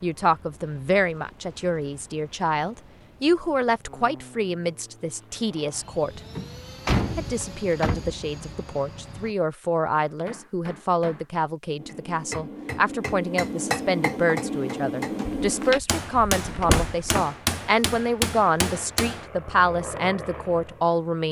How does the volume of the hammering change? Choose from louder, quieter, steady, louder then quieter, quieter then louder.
louder.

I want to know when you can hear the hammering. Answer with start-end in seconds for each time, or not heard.
10.1-19.3.